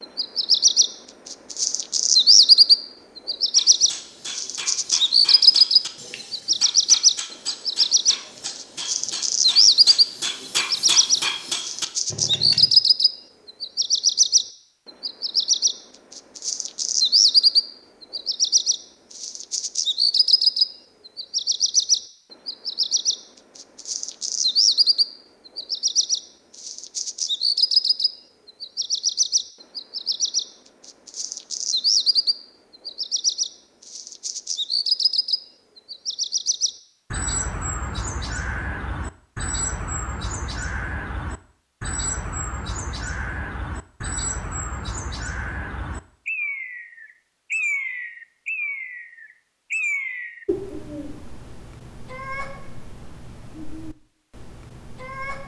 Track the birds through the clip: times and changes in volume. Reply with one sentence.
The birds can be heard from 0.0 to 55.4 s, getting quieter.